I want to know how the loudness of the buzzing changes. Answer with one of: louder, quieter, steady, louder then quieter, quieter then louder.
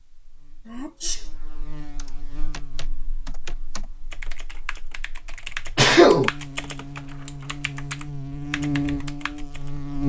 quieter then louder.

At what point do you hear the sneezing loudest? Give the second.
6 s.